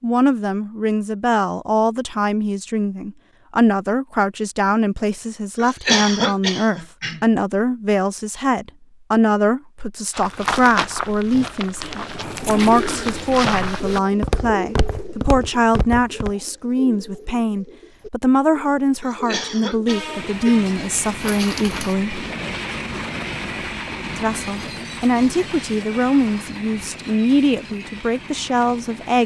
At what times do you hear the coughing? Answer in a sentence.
The coughing can be heard from 5.5 to 7.2 s and from 19.0 to 20.7 s.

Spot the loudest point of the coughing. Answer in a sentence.
The loudest moment of the coughing is at 6 seconds.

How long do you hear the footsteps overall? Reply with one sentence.
You can hear the footsteps for 6 seconds altogether.